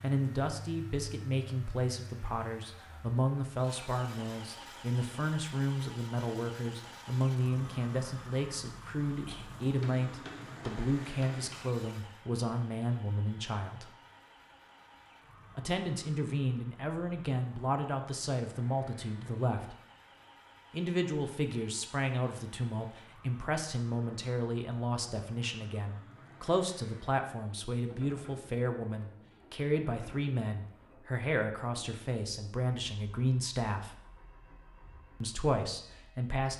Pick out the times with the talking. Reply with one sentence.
You can hear the talking from 0.0 to 13.9 s, from 15.6 to 19.8 s, from 20.7 to 33.9 s and from 35.2 to 36.5 s.